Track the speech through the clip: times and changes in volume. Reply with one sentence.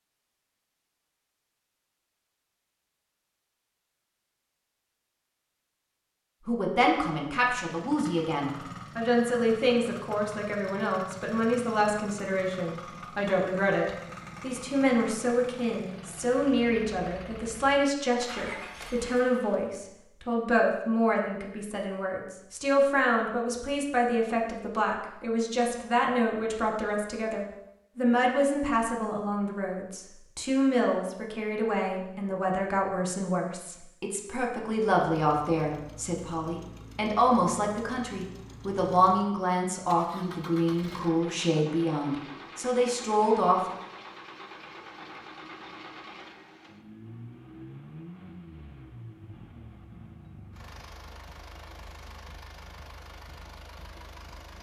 You can hear the speech from 6.5 to 43.8 s, at a steady volume.